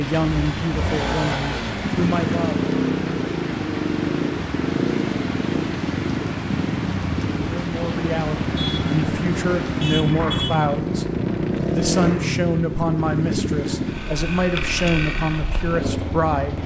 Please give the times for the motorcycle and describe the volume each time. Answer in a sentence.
You can hear the motorcycle from 0.0 to 16.6 s, at a steady volume.